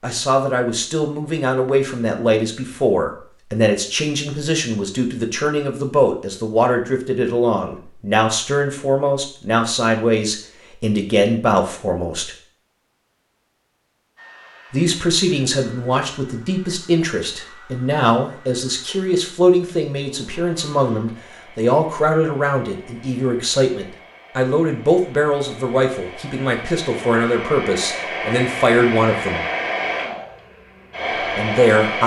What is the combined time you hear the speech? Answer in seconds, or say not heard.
28 s.